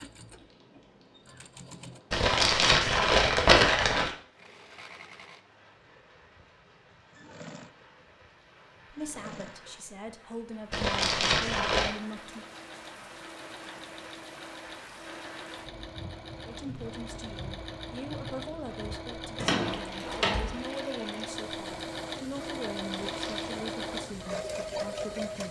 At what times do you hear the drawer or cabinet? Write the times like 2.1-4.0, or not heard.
19.4-20.6.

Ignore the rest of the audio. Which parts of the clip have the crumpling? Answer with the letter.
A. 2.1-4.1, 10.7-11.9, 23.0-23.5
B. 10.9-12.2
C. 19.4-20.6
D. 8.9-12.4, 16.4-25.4
A.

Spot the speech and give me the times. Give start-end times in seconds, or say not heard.
8.9-12.4, 16.4-25.4.